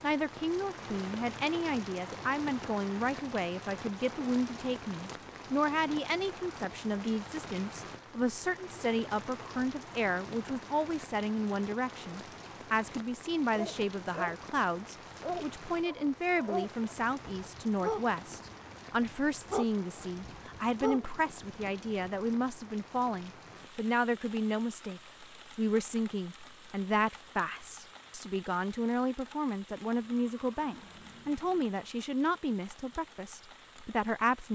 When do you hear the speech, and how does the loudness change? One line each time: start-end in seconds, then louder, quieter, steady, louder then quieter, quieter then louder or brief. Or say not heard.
0.0-34.5 steady.